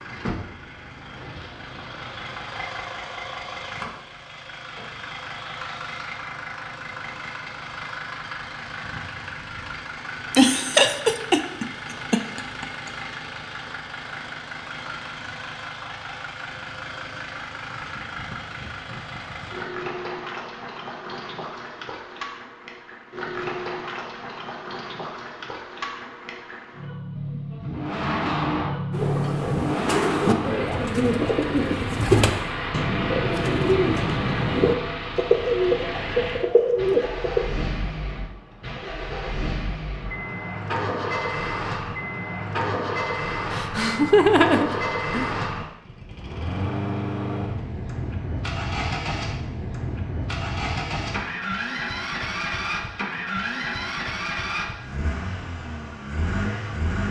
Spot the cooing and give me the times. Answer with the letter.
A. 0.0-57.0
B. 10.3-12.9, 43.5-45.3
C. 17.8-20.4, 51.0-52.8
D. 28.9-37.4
D.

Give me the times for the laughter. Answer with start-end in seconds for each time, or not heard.
10.3-12.9, 43.5-45.3.